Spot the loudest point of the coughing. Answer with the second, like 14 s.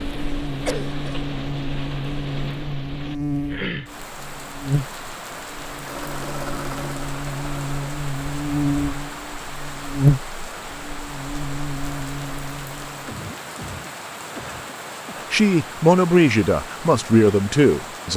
1 s.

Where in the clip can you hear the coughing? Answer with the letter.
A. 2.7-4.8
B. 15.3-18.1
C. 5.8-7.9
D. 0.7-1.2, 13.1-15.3
D.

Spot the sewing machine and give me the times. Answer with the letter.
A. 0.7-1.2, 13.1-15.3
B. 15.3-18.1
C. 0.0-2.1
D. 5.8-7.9
D.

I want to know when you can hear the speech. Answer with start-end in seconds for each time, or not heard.
15.3-18.1.